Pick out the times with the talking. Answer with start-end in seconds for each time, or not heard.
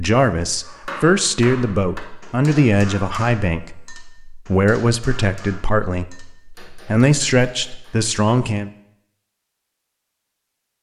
0.0-8.7.